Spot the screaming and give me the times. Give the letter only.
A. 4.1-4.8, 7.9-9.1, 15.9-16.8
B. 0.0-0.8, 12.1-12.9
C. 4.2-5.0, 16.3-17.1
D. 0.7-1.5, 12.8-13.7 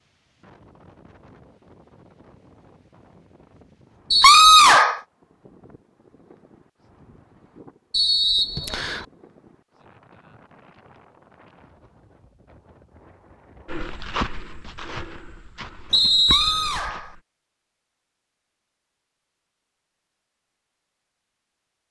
C.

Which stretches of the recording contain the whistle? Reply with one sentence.
The whistle can be heard from 4.1 to 4.8 s, from 7.9 to 9.1 s and from 15.9 to 16.8 s.